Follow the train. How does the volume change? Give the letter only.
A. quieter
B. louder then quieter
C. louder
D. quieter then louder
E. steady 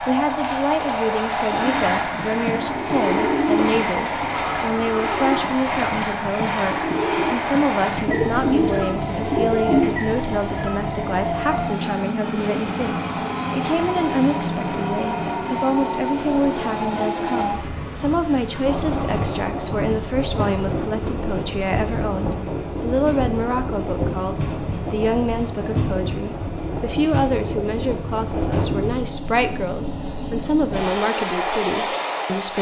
E.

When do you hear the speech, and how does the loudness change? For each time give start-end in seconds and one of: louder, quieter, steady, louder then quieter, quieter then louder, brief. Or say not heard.
0.1-32.5 steady.